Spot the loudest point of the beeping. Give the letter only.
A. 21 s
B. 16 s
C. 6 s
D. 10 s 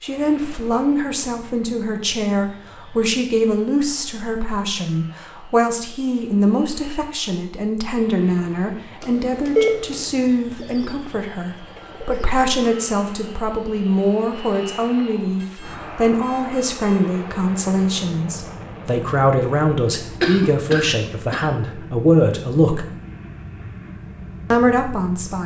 D.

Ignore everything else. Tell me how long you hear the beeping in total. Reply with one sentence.
You can hear the beeping for 3 seconds altogether.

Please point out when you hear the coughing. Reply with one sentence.
The coughing can be heard from 20.2 to 21.5 s.